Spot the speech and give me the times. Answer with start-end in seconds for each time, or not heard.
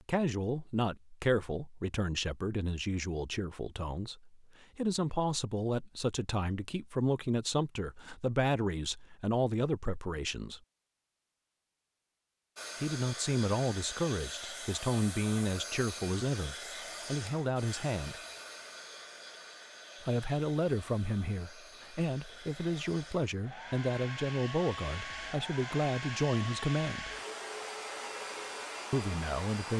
0.1-10.6, 12.8-18.1, 20.0-27.1, 28.9-29.7.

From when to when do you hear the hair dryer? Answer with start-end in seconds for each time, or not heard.
12.6-29.7.